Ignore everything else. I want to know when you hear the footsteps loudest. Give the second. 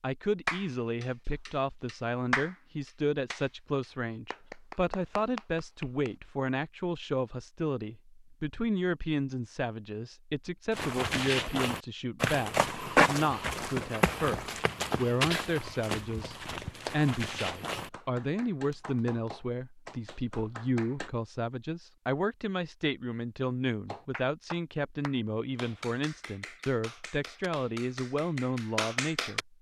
13 s.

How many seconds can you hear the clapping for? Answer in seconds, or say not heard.
17 s.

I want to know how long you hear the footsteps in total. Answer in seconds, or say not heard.
7 s.